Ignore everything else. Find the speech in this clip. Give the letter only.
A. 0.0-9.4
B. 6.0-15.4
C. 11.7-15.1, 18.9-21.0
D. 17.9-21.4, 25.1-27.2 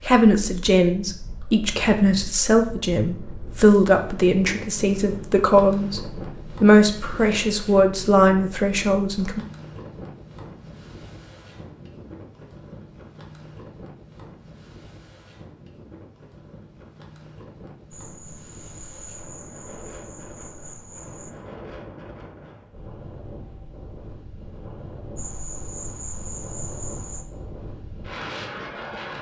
A.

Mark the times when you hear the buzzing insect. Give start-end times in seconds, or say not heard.
17.9-21.4, 25.1-27.2.